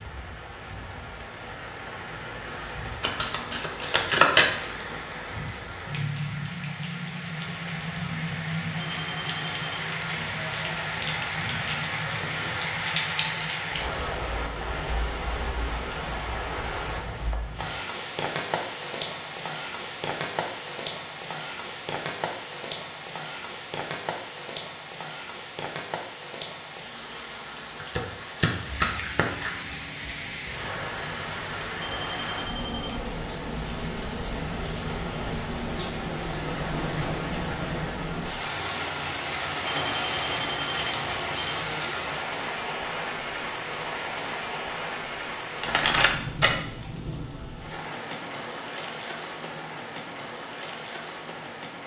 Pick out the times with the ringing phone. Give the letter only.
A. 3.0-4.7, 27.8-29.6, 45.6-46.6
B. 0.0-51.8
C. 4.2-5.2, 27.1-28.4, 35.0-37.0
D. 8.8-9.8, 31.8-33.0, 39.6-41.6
D.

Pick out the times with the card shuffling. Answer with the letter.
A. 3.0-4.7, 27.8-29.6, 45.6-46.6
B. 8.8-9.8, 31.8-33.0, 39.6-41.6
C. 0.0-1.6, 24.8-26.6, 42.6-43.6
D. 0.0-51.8
A.